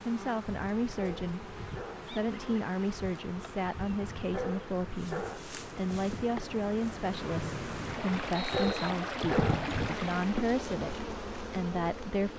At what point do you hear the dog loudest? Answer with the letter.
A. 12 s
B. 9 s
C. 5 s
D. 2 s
B.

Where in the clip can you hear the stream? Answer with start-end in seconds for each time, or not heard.
0.0-10.6.